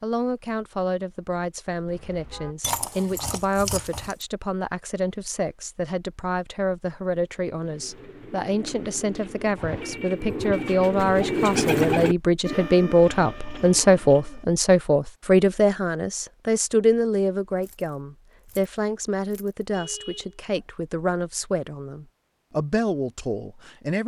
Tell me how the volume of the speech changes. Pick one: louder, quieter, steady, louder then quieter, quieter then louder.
louder then quieter.